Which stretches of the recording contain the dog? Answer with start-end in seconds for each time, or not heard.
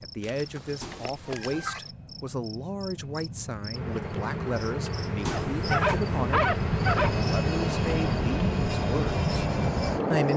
0.2-1.8, 5.3-7.2.